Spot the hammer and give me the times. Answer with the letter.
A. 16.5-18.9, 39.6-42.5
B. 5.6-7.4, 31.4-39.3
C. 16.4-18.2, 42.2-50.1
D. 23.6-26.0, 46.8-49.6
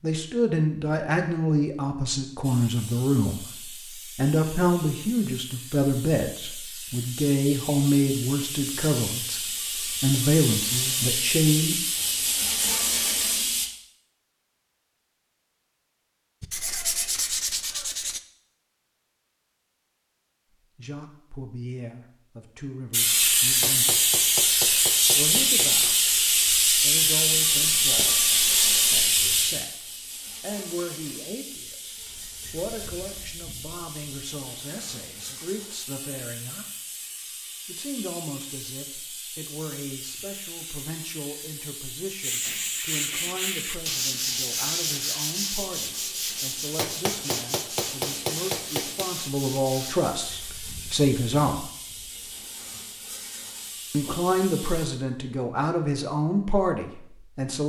D.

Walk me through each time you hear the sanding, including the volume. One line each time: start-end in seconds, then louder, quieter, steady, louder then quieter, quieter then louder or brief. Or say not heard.
16.4-18.2 brief
42.2-50.1 quieter.